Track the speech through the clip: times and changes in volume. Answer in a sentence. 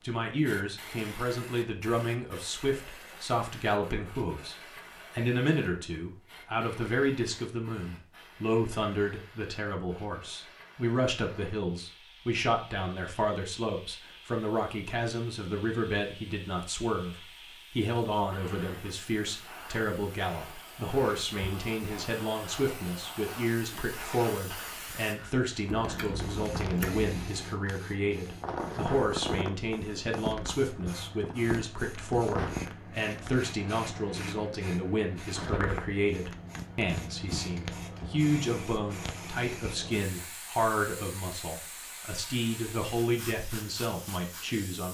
You can hear the speech from 0.0 to 44.8 s, at a steady volume.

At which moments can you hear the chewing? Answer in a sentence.
The chewing can be heard from 25.6 to 27.4 s.